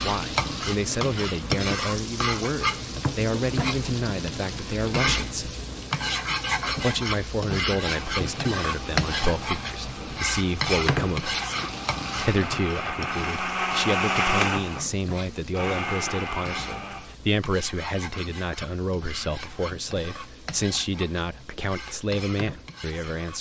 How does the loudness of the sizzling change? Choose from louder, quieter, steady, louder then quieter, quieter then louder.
quieter.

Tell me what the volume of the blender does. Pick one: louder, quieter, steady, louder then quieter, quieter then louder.
louder then quieter.